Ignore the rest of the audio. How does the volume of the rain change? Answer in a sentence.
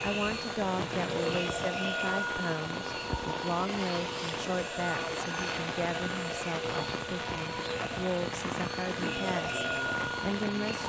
The loudness of the rain stays about the same.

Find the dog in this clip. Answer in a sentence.
The dog can't be heard in this clip.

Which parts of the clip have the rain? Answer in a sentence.
You can hear the rain from 0.0 to 10.8 s.